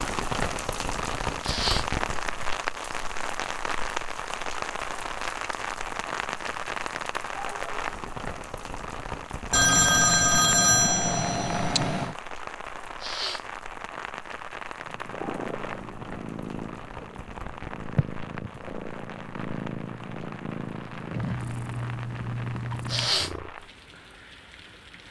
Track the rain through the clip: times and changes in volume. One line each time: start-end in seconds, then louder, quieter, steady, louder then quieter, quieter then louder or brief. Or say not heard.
0.0-25.0 quieter.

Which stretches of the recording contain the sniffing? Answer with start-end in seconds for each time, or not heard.
1.4-1.9, 13.0-13.4, 22.9-23.3.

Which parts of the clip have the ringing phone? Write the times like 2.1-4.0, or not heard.
9.5-12.2.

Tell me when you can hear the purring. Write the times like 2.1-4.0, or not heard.
14.8-23.5.